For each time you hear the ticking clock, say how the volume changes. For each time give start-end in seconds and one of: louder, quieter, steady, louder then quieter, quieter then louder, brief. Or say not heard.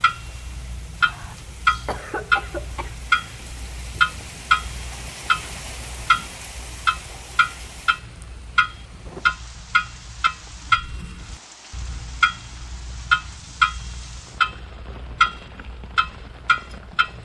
0.0-17.2 steady.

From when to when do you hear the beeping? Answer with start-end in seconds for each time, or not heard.
not heard.